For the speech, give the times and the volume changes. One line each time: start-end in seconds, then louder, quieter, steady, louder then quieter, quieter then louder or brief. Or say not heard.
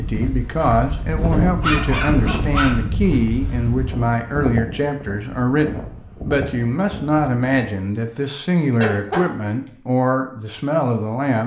0.0-11.4 steady.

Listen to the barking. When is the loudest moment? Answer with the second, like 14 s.
2 s.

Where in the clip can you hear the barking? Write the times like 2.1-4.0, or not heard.
1.4-3.0, 8.0-9.7.